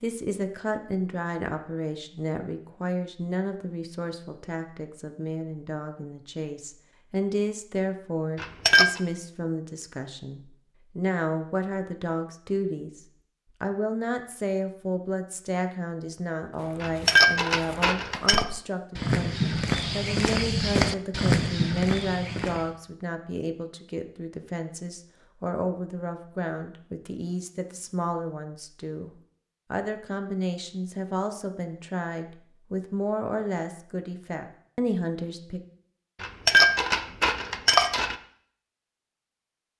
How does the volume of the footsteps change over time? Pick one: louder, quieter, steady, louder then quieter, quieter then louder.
louder.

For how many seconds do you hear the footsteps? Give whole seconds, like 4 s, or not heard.
6 s.